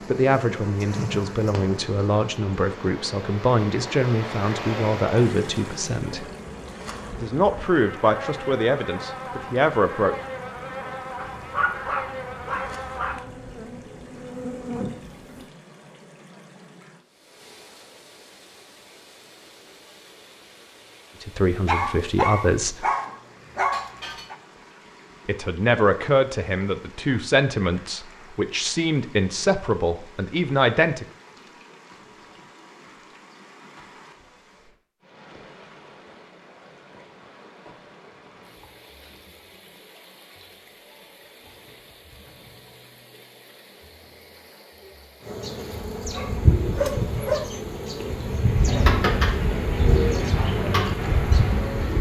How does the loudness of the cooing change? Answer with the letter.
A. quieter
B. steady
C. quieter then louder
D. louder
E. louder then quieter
C.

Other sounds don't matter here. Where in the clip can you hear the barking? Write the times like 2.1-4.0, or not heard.
11.2-13.2, 21.6-24.4, 46.1-47.6.